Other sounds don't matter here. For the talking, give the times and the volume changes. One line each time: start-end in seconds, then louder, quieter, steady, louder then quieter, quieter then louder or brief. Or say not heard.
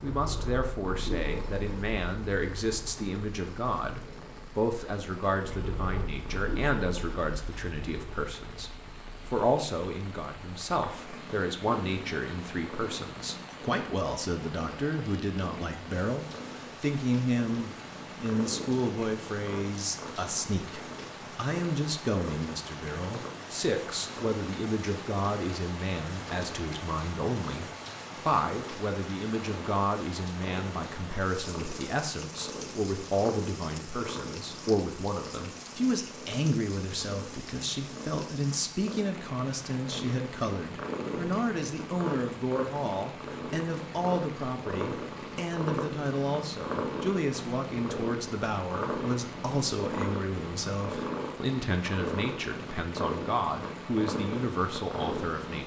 0.0-55.6 steady.